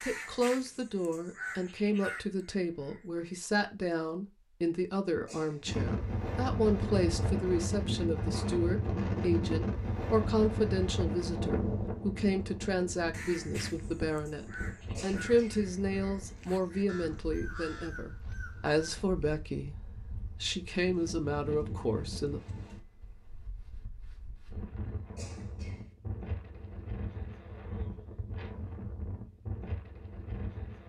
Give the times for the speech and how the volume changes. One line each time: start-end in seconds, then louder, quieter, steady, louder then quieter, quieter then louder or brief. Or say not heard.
0.0-22.4 steady.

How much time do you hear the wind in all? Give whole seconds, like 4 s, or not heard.
25 s.